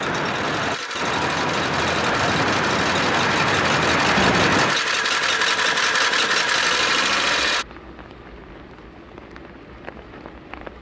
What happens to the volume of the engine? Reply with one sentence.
The loudness of the engine goes up.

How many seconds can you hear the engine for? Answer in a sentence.
You can hear the engine for 8 seconds altogether.